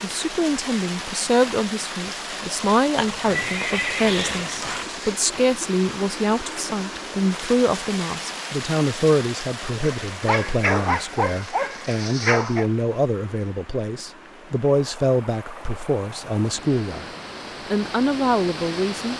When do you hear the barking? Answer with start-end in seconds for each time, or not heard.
9.8-12.7.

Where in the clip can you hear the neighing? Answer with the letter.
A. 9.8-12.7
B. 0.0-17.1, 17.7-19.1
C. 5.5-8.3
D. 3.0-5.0
D.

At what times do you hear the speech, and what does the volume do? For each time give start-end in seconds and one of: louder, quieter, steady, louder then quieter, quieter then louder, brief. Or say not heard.
0.0-17.1 steady
17.7-19.1 brief.